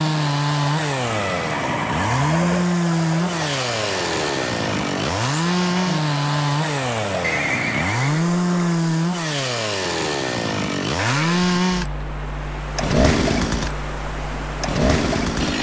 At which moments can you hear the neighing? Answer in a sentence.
The neighing can be heard from 1.0 to 2.6 s, from 7.2 to 8.8 s and from 10.9 to 11.5 s.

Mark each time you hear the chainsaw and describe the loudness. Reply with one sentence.
You can hear the chainsaw from 0.0 to 15.5 s, at a steady volume.